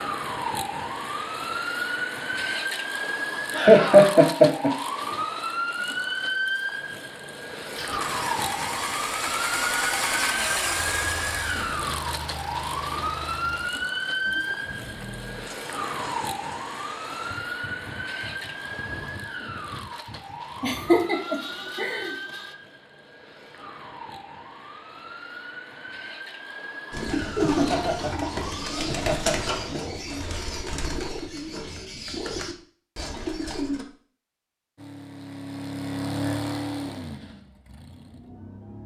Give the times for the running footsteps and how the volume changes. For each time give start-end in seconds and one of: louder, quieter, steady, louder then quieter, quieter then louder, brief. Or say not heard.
not heard.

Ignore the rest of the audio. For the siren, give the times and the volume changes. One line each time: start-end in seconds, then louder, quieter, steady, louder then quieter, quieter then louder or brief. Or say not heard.
0.0-28.8 quieter.